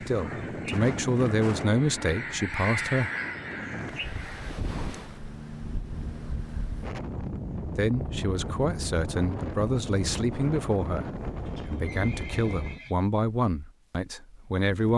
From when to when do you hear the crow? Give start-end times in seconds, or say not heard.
0.0-4.5.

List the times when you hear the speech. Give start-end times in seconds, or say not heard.
0.0-3.1, 7.6-14.9.